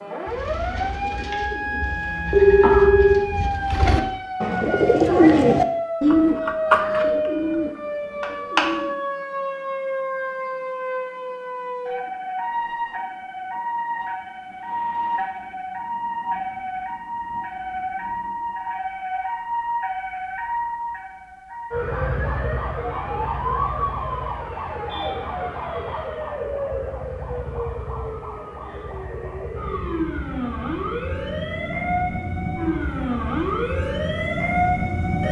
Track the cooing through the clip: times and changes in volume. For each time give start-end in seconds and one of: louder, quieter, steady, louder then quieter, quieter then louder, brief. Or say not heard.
0.2-8.9 louder then quieter.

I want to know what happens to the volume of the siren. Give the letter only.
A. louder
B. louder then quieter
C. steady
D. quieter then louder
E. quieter
C.